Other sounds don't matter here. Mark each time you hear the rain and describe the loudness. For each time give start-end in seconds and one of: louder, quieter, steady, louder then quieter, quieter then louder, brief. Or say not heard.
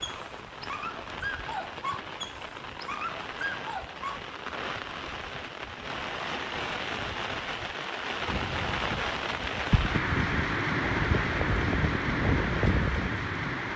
0.0-13.7 louder.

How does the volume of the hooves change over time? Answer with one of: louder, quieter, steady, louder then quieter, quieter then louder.
louder.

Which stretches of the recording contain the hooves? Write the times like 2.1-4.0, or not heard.
8.2-13.5.